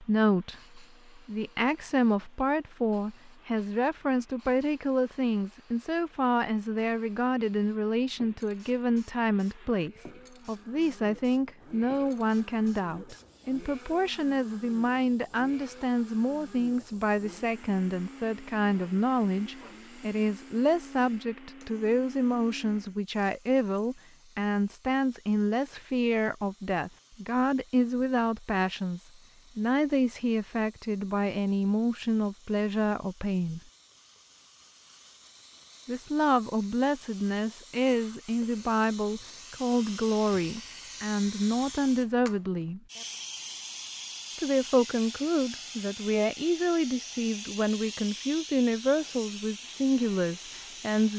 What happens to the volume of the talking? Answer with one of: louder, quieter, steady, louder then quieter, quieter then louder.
steady.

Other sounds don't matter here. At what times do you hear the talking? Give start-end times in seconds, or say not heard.
0.0-33.6, 35.9-42.8, 44.4-51.1.